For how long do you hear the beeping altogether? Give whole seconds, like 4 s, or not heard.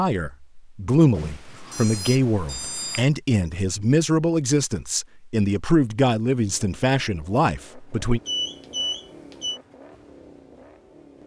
3 s.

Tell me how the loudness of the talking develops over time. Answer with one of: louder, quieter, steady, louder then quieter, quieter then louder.
steady.